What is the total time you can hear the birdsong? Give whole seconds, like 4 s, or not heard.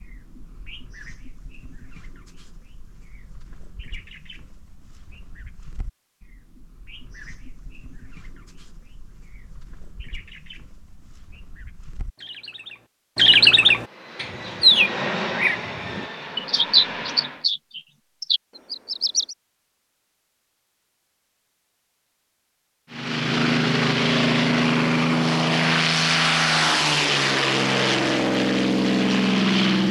19 s.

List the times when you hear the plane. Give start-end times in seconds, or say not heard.
13.7-17.4, 22.9-29.8.